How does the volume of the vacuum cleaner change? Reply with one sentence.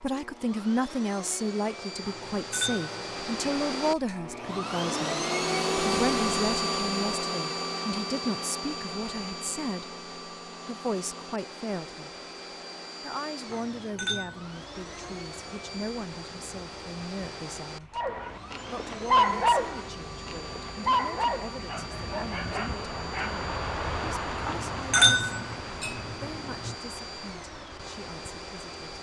The loudness of the vacuum cleaner goes down.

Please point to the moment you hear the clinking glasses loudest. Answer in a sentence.
The loudest moment of the clinking glasses is at 25 seconds.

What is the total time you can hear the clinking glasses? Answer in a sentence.
The clinking glasses can be heard for 5 seconds in total.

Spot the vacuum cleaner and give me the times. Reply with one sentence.
The vacuum cleaner can be heard from 0.0 to 28.9 s.